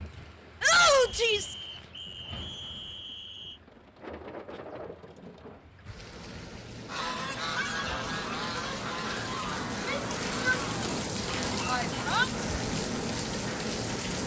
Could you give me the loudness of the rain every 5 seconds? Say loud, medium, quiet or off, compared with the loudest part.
quiet, medium, loud.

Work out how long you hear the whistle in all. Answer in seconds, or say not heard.
3 s.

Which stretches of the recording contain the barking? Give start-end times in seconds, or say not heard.
not heard.